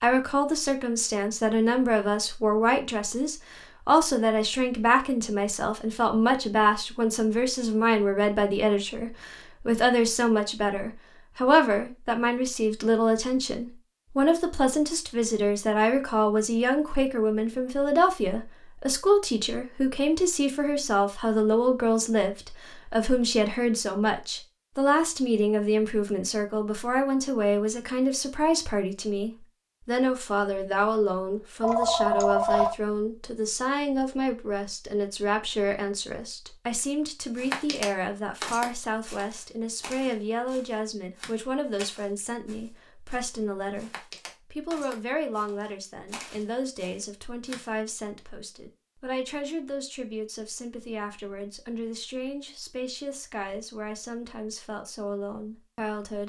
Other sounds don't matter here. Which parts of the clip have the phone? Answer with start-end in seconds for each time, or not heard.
31.6-32.8.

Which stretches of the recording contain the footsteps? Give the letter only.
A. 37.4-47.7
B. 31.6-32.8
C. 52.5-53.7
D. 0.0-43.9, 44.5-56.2
A.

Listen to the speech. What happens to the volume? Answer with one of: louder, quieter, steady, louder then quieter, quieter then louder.
quieter.